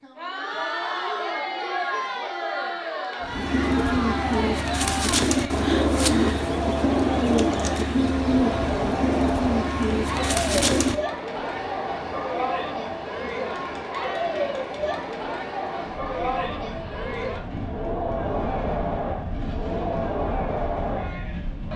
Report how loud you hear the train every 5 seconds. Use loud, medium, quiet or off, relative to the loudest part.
off, off, loud, loud, loud.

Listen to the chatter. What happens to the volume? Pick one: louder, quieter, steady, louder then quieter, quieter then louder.
steady.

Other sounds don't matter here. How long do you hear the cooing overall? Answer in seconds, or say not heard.
8 s.